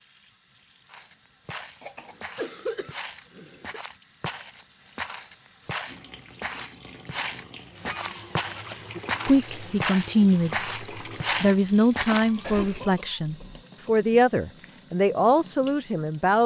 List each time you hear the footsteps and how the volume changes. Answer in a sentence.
The footsteps can be heard from 0.8 to 12.8 s, getting louder.